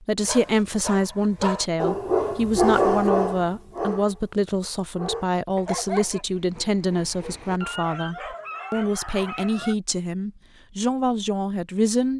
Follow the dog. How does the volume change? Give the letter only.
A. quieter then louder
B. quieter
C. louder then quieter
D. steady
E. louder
C.